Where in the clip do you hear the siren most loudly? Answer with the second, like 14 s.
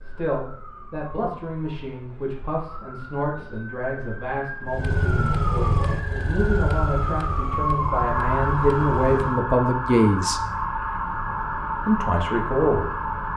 8 s.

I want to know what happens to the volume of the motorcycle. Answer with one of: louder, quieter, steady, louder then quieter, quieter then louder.
quieter.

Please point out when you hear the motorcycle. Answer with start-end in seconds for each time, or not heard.
4.7-9.4.